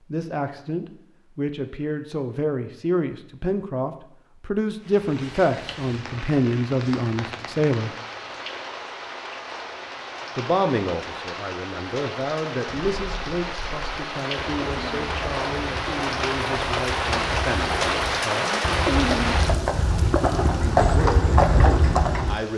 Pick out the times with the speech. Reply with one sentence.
The speech can be heard from 0.1 to 7.9 s, from 10.3 to 18.6 s and from 20.5 to 22.5 s.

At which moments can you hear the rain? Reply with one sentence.
You can hear the rain from 4.8 to 22.5 s.